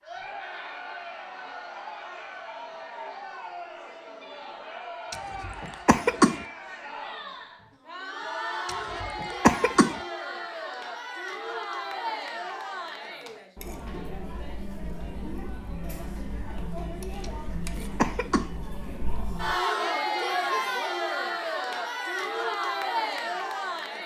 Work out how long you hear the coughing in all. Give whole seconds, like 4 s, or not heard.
4 s.